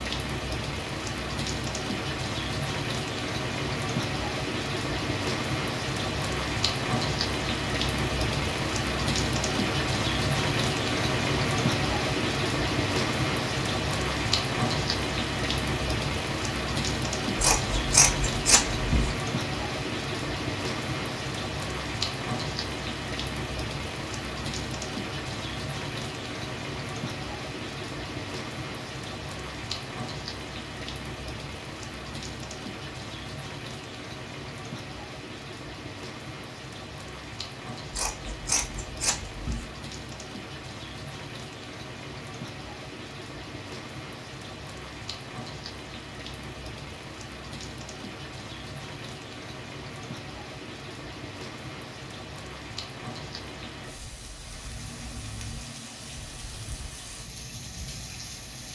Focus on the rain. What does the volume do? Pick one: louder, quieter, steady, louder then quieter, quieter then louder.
quieter.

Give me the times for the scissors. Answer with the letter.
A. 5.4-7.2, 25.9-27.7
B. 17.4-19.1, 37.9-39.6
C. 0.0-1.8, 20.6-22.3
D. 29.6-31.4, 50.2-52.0
B.